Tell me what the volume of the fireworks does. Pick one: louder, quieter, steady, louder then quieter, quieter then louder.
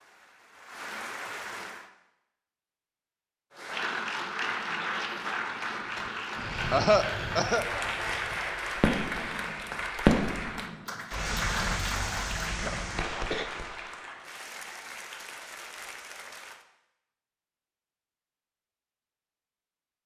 louder then quieter.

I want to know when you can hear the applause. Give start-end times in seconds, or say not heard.
0.0-1.9, 3.5-16.6.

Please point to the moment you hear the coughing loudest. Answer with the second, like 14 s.
7 s.